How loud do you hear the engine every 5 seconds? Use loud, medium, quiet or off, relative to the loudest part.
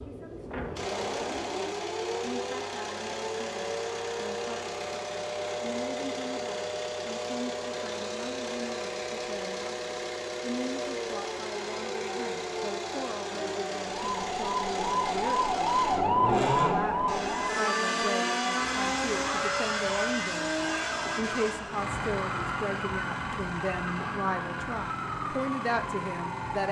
medium, medium, medium, loud, loud, medium.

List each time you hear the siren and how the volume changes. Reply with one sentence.
The siren can be heard from 0.0 to 26.4 s, getting louder then quieter.